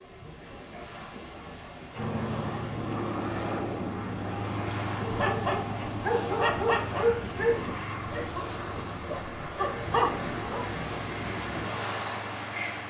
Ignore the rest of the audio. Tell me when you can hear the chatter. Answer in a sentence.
The chatter can't be heard in this clip.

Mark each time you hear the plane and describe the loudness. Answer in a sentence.
The plane can be heard from 1.9 to 12.8 s, getting quieter.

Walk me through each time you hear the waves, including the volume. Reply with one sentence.
You can hear the waves from 0.0 to 12.8 s, getting louder.